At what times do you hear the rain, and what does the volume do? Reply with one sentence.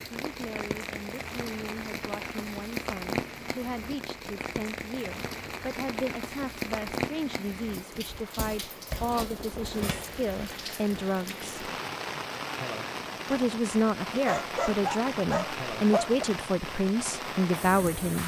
You can hear the rain from 0.0 to 18.2 s, at a steady volume.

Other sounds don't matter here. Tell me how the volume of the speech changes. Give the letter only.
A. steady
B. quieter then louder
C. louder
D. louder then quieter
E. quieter
C.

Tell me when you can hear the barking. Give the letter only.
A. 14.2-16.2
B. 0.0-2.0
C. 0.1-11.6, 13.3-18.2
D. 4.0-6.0
A.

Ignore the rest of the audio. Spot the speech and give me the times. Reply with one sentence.
You can hear the speech from 0.1 to 11.6 s and from 13.3 to 18.2 s.